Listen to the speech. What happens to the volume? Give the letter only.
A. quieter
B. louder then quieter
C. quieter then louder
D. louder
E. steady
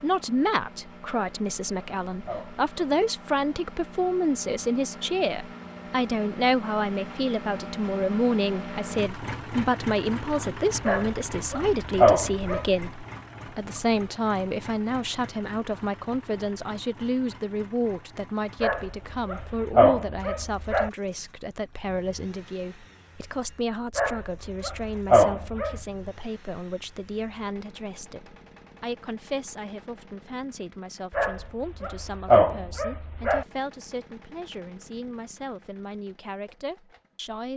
A.